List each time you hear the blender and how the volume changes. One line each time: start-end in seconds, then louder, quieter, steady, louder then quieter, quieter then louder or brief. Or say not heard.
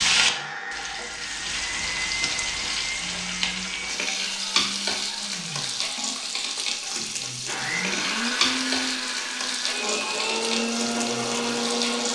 0.0-12.0 quieter then louder.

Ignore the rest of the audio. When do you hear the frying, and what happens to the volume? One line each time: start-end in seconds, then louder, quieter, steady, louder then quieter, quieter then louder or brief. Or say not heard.
0.0-12.0 steady.